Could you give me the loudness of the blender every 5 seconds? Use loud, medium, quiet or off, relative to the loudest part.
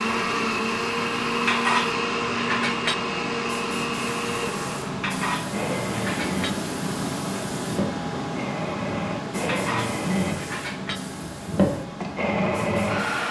loud, medium, loud.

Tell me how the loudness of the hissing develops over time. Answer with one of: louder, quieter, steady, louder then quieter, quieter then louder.
louder then quieter.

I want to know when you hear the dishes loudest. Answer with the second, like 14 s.
2 s.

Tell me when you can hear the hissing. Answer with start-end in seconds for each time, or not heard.
0.0-13.2.